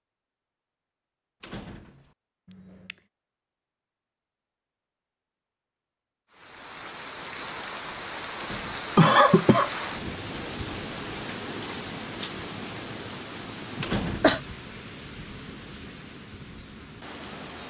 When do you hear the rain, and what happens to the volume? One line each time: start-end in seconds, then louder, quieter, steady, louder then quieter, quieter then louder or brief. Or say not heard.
6.3-17.6 quieter.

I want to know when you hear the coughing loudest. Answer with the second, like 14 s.
9 s.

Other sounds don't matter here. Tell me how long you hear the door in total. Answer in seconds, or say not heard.
2 s.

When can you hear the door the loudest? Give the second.
14 s.